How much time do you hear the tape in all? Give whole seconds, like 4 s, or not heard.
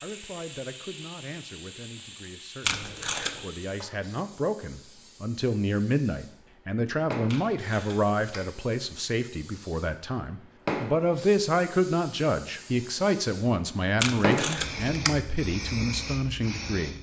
3 s.